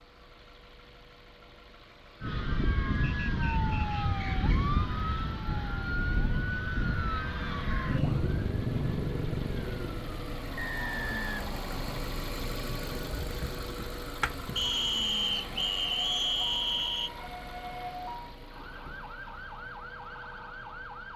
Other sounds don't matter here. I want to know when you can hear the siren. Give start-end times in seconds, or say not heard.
2.2-21.1.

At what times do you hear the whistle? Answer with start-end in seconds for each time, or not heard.
3.0-4.6, 10.6-11.8, 14.6-17.1.